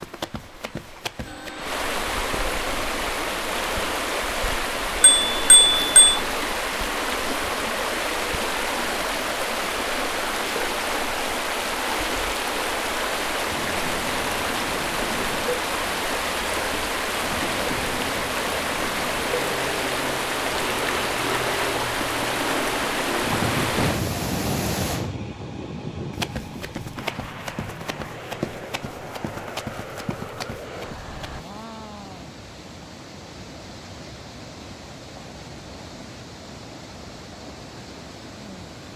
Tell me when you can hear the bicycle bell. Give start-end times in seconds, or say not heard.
5.0-6.2.